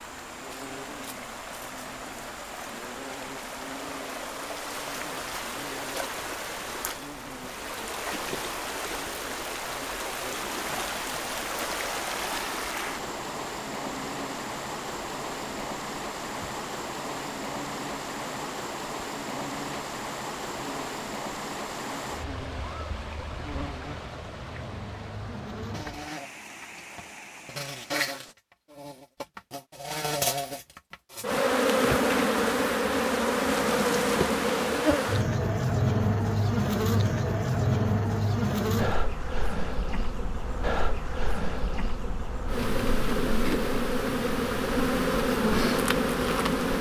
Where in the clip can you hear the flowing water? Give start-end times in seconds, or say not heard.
0.0-28.4.